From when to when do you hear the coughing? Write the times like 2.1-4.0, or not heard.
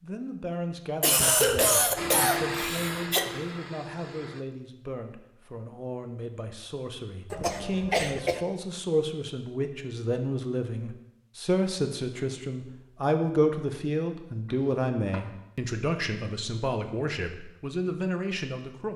1.0-3.3, 7.3-8.4, 14.4-15.2.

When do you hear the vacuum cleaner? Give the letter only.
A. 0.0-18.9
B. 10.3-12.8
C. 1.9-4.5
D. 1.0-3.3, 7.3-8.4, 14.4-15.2
C.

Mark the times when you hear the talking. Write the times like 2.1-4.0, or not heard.
0.0-18.9.